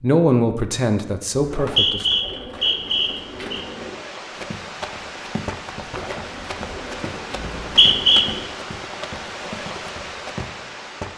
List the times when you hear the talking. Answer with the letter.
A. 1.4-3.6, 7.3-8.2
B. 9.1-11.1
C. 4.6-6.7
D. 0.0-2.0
D.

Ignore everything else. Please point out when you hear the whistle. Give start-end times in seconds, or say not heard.
1.4-3.6, 7.3-8.2.